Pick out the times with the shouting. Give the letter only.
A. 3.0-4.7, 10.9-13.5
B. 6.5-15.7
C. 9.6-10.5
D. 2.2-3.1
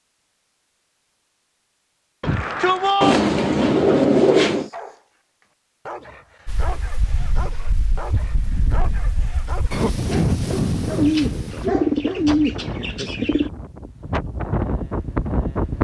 D.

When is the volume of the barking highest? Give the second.
12 s.